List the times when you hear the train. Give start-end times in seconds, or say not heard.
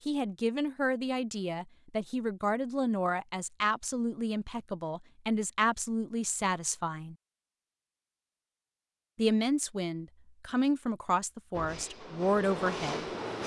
11.5-13.4.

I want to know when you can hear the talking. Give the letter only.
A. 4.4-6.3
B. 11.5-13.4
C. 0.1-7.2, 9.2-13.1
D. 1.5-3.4
C.